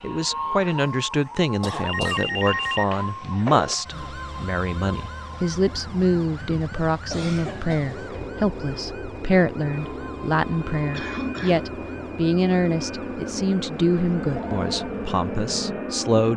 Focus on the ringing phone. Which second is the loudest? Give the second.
3 s.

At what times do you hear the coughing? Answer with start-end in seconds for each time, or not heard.
1.6-3.0, 6.9-8.1, 10.9-11.7.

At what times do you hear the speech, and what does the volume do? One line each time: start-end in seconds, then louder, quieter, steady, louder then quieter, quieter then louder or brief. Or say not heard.
0.0-16.3 steady.